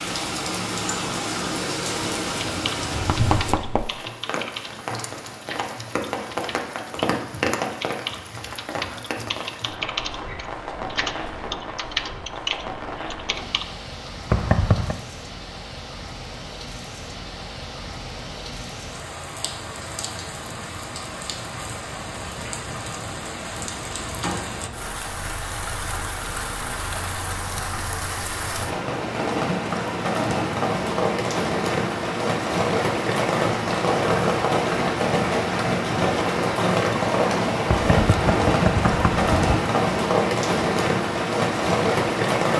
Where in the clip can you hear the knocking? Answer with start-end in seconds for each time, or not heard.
3.0-3.9, 14.3-15.0, 37.6-39.4.